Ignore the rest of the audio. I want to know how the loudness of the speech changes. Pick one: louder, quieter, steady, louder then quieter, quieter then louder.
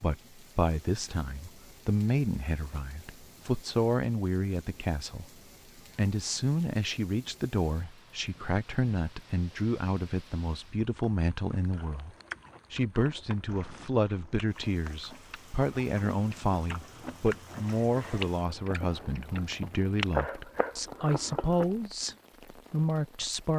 steady.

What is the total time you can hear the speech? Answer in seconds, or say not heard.
23 s.